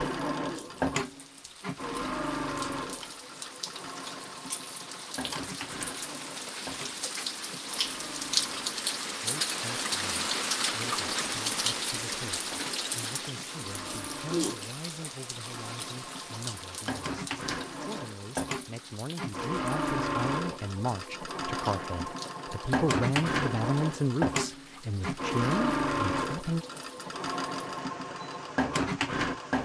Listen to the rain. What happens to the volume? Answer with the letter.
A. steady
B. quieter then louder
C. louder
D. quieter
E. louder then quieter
E.